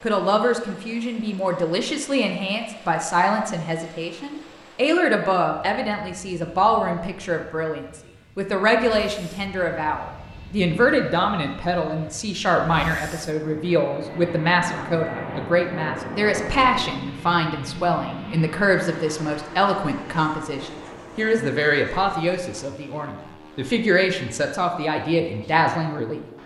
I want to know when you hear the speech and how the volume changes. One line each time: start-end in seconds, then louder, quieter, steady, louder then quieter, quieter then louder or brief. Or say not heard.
0.0-26.2 steady.